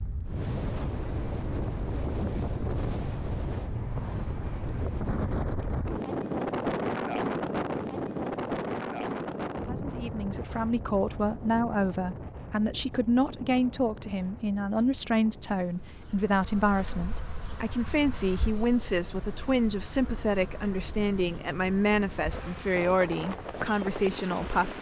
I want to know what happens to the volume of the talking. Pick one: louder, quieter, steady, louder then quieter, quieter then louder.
steady.